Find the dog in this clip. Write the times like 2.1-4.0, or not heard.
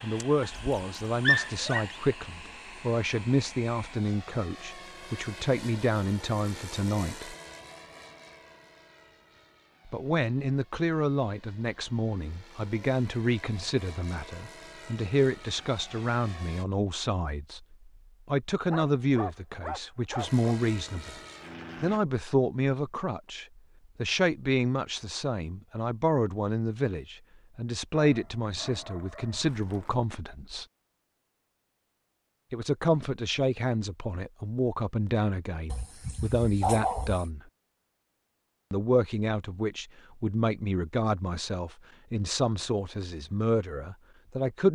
0.5-1.9, 18.7-20.4, 28.0-30.0, 35.7-37.2.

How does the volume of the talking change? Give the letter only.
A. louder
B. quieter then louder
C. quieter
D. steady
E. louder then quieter
D.